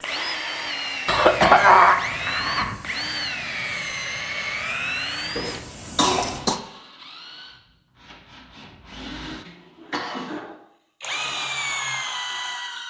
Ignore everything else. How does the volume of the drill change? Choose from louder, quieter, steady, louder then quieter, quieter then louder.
quieter then louder.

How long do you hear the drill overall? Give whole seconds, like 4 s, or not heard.
13 s.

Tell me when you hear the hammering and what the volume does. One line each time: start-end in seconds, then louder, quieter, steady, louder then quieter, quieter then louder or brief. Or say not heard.
not heard.